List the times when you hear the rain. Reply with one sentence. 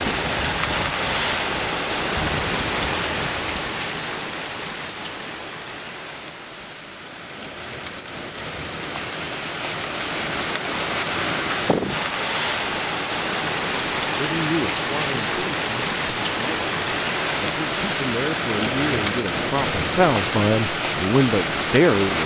You can hear the rain from 0.0 to 22.2 s.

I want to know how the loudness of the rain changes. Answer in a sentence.
The volume of the rain goes down, then up.